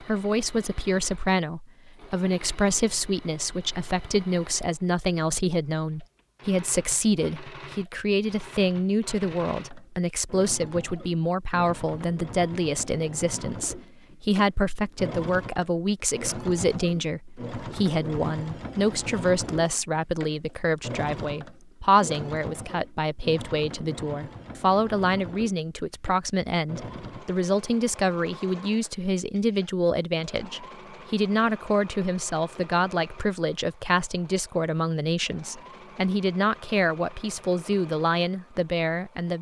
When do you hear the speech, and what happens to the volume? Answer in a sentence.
The speech can be heard from 0.0 to 39.3 s, at a steady volume.